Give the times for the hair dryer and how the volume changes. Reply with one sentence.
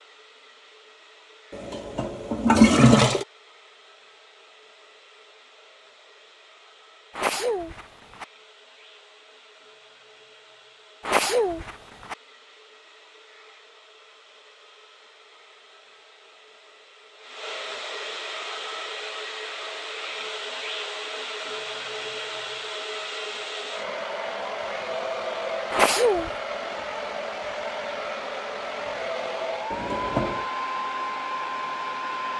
You can hear the hair dryer from 0.0 to 32.3 s, getting louder.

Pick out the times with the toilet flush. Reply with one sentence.
The toilet flush can be heard from 1.5 to 3.2 s and from 29.7 to 30.5 s.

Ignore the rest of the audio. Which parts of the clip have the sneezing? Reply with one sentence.
The sneezing can be heard from 7.2 to 8.2 s, from 11.1 to 12.2 s and from 25.7 to 26.3 s.